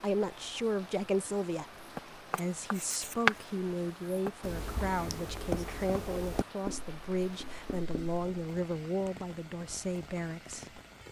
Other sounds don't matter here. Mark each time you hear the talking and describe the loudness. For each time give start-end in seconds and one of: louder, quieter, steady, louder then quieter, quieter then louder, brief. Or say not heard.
0.0-10.8 steady.